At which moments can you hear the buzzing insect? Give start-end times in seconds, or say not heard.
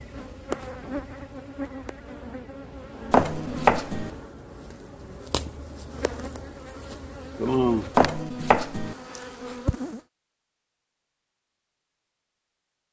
0.0-10.0.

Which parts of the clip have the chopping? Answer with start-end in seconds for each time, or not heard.
3.1-4.1, 8.0-8.9.